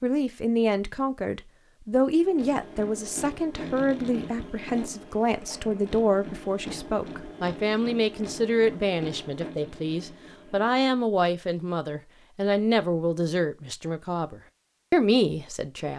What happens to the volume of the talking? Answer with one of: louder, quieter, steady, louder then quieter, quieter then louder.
steady.